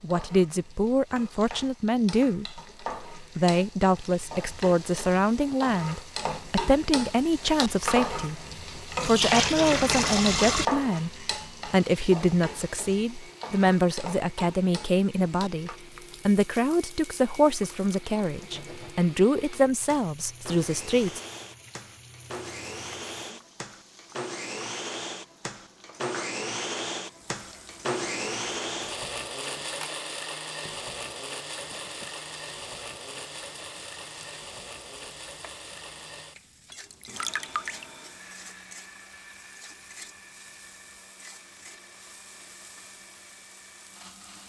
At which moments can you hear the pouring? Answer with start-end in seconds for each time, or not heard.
9.0-10.7, 17.5-18.2, 36.9-37.9.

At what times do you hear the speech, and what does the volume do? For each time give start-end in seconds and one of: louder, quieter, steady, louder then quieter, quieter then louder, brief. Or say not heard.
0.0-21.2 steady.